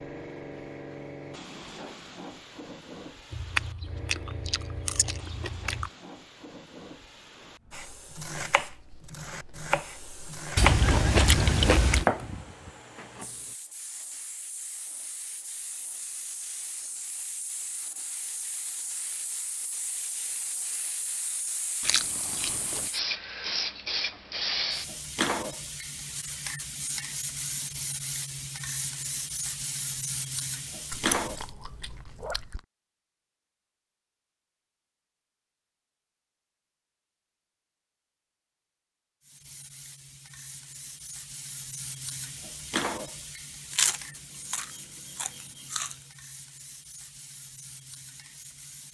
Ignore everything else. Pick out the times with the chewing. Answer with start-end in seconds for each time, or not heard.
3.3-5.9, 10.6-12.1, 21.8-22.9, 30.9-32.6, 43.7-46.0.